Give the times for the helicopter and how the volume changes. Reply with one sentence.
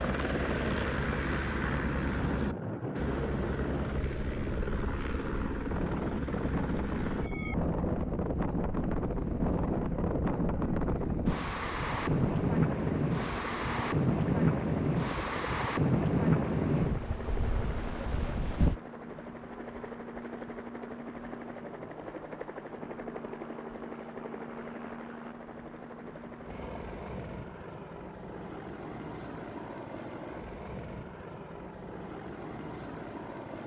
The helicopter can be heard from 0.0 to 33.6 s, getting quieter.